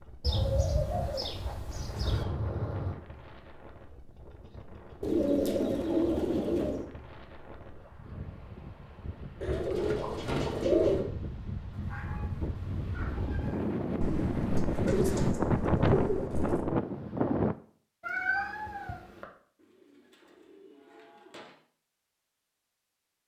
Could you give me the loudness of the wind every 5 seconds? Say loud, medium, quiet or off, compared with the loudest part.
quiet, quiet, medium, loud, off.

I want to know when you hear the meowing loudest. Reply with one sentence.
The volume of the meowing peaks at 18 seconds.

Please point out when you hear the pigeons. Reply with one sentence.
You can hear the pigeons from 0.2 to 2.2 s, from 5.0 to 6.8 s, from 9.4 to 11.1 s, from 14.0 to 16.6 s and from 19.6 to 21.6 s.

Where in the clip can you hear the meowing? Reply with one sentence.
The meowing can be heard from 2.0 to 3.0 s, from 11.7 to 13.8 s and from 18.0 to 19.2 s.